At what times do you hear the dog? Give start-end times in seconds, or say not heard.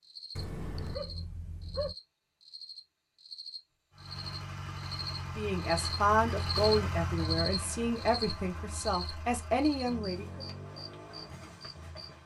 0.3-1.9.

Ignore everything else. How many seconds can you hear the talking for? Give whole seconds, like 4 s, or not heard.
5 s.